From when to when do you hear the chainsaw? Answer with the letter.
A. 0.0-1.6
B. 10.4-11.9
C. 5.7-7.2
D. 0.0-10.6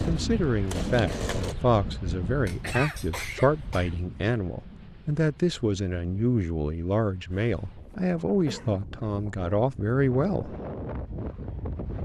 A.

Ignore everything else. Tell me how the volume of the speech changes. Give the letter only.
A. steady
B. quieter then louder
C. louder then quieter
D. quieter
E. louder
A.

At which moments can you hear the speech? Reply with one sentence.
The speech can be heard from 0.0 to 10.6 s.